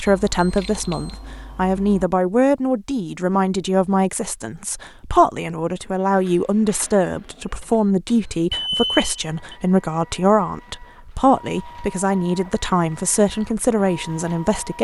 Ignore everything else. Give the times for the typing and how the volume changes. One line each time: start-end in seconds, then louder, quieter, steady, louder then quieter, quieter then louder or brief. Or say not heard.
not heard.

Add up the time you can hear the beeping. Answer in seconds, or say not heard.
3 s.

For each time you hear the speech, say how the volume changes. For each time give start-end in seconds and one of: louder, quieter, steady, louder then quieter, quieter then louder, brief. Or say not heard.
0.0-14.8 steady.